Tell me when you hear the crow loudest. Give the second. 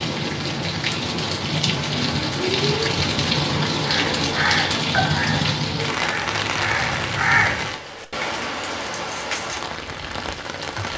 7 s.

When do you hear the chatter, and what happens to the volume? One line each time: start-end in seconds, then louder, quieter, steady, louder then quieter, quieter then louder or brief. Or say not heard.
not heard.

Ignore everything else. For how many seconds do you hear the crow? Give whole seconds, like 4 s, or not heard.
4 s.